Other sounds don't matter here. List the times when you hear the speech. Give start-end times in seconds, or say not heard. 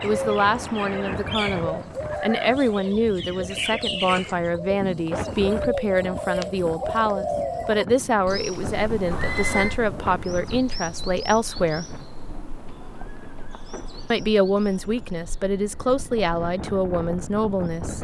0.0-11.9, 14.1-17.9.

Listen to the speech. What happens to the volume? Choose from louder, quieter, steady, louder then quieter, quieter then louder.
steady.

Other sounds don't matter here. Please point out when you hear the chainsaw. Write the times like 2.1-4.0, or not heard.
not heard.